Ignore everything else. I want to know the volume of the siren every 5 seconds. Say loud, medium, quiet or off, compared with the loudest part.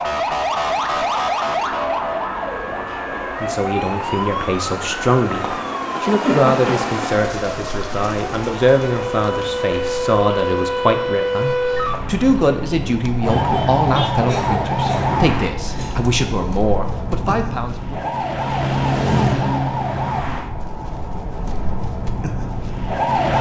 loud, medium, loud, loud, loud.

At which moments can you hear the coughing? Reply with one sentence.
You can hear the coughing from 6.2 to 6.9 s and from 14.1 to 16.1 s.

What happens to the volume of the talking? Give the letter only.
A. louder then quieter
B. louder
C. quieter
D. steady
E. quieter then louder
D.